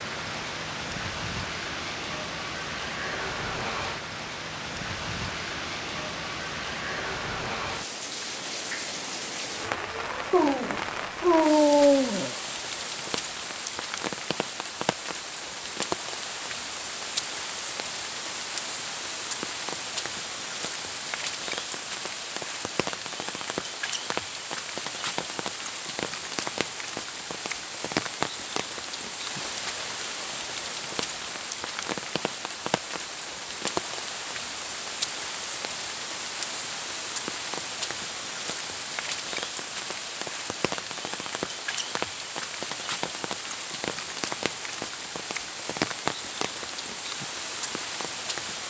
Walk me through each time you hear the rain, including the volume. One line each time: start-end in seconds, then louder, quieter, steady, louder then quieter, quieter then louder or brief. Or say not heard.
0.0-48.6 steady.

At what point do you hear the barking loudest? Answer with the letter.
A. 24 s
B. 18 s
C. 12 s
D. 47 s
C.